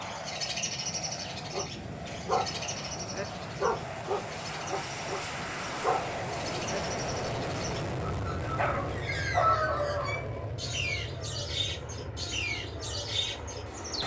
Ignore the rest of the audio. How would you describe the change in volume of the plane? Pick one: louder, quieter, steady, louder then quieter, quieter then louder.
louder then quieter.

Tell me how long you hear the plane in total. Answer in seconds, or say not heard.
14 s.